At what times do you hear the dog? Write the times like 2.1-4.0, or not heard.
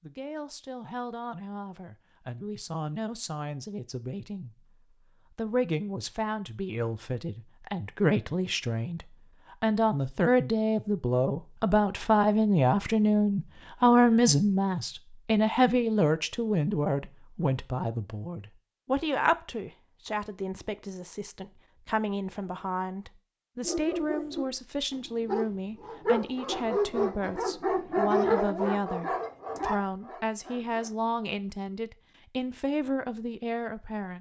23.6-31.1.